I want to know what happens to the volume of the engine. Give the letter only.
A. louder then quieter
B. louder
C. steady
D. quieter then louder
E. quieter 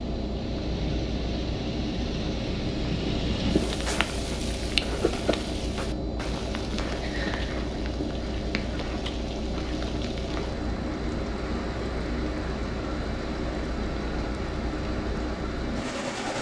C.